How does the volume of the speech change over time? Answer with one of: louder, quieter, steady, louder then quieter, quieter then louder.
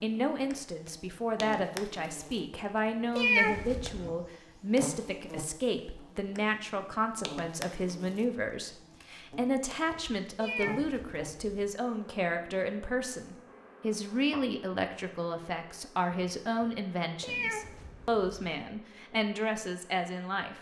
steady.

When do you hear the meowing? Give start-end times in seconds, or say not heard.
3.1-4.1, 10.4-11.7, 17.2-18.5.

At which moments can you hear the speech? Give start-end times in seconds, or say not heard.
0.0-20.5.